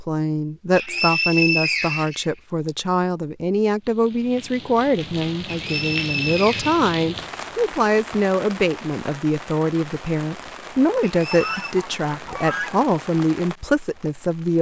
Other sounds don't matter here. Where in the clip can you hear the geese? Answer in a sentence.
The geese can be heard from 11.3 to 12.9 s.